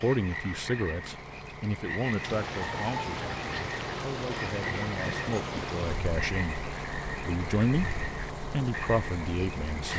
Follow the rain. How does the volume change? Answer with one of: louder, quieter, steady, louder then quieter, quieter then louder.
quieter.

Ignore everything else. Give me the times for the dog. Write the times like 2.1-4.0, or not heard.
not heard.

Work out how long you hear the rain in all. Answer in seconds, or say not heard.
8 s.